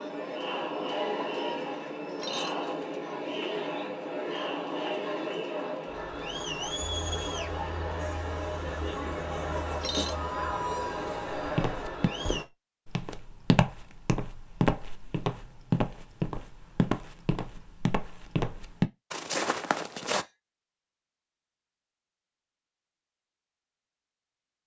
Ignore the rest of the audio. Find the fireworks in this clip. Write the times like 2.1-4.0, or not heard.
not heard.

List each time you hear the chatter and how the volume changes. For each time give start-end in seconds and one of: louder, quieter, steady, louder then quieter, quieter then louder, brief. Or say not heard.
0.0-12.4 steady.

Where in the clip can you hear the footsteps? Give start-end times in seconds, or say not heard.
11.3-20.2.